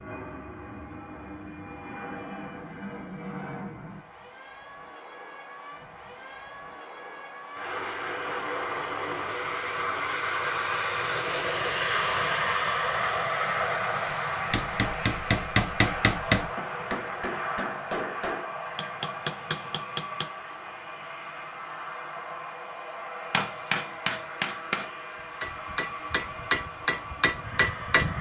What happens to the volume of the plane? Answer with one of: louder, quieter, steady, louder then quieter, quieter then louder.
louder then quieter.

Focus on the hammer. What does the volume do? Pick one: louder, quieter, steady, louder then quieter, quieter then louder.
quieter then louder.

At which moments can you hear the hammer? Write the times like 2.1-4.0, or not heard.
14.1-20.3, 23.3-28.1.